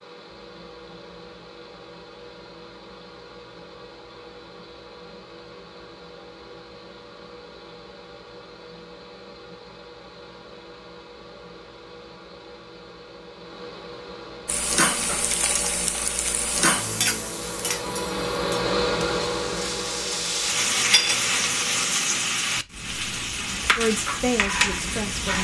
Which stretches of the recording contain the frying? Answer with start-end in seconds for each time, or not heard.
14.4-25.3.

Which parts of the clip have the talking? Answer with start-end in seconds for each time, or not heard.
23.8-25.3.